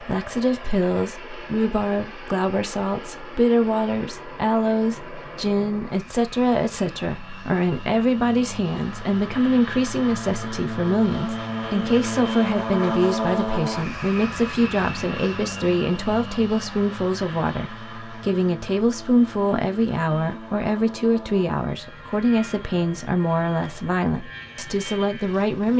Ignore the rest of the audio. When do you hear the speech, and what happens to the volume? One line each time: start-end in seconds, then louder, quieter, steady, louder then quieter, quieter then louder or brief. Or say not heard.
0.0-25.7 steady.